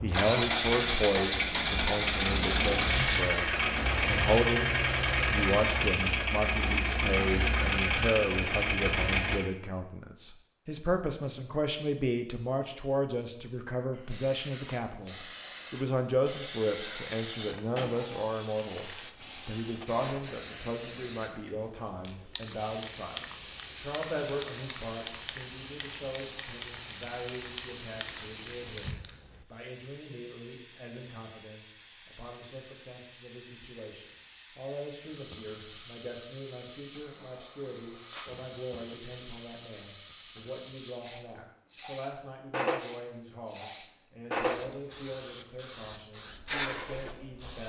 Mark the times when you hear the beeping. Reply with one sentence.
You can't hear the beeping here.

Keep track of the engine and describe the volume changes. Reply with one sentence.
The volume of the engine stays about the same.